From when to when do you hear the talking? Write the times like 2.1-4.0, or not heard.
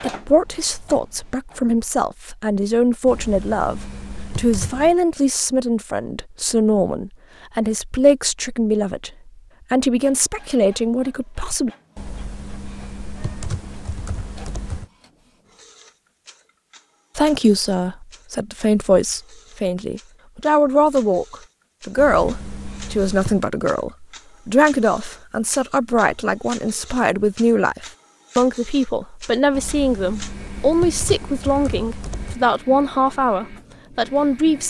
0.0-11.7, 17.1-34.6.